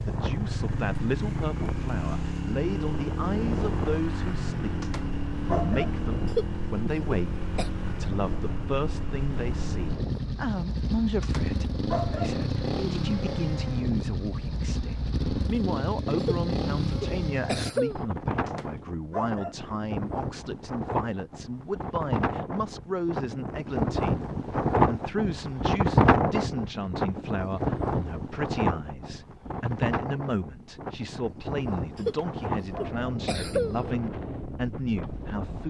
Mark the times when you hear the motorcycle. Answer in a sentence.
The motorcycle can be heard from 0.0 to 17.7 s.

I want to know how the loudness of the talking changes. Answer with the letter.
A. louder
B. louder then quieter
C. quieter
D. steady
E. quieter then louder
D.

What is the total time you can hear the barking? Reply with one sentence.
You can hear the barking for 4 seconds altogether.